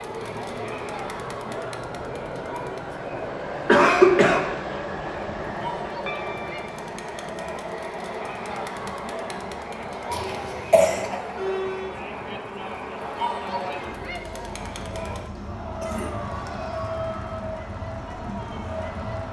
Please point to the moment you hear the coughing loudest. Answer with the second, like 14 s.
4 s.